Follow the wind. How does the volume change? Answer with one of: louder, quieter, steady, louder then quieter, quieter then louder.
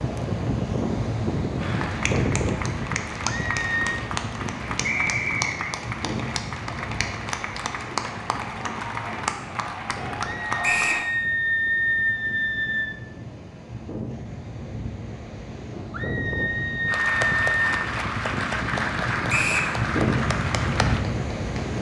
quieter then louder.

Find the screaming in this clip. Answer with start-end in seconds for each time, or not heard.
3.2-4.0, 10.2-13.0, 15.9-17.6.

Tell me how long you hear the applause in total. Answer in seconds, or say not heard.
14 s.